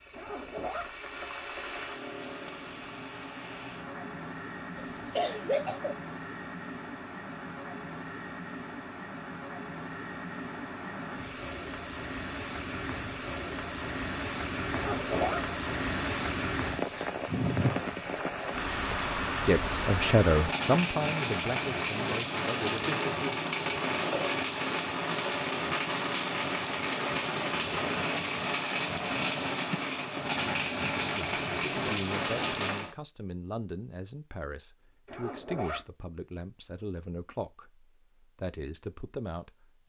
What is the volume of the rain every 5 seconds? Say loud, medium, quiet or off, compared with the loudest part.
medium, medium, medium, loud, loud, loud, loud, off.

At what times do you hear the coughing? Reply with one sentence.
You can hear the coughing from 4.8 to 6.0 s, from 22.7 to 24.4 s and from 29.7 to 30.2 s.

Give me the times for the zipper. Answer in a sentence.
The zipper can be heard from 0.1 to 0.9 s, from 14.7 to 15.4 s and from 35.0 to 35.9 s.